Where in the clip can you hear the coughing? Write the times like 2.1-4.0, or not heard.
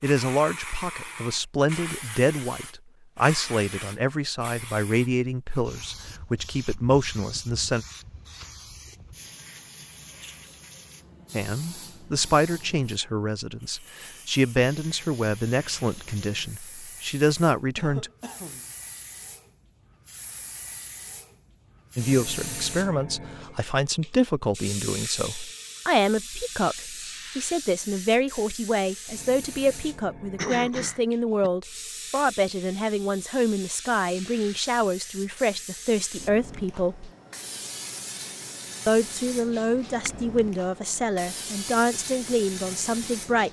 17.8-18.7, 30.4-31.5.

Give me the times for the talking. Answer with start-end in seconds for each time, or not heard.
0.0-7.8, 11.3-18.1, 21.9-37.1, 38.9-43.4.